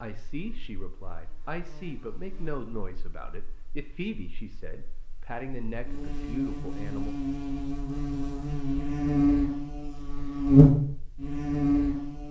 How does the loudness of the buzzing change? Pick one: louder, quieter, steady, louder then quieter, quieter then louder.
quieter then louder.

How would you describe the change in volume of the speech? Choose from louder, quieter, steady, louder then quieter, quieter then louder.
steady.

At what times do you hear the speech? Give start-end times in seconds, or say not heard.
0.0-7.2.